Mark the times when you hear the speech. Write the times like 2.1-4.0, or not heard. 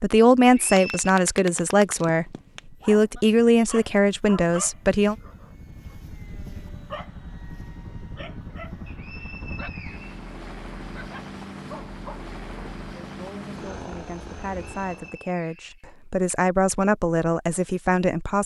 0.0-5.2, 13.0-18.4.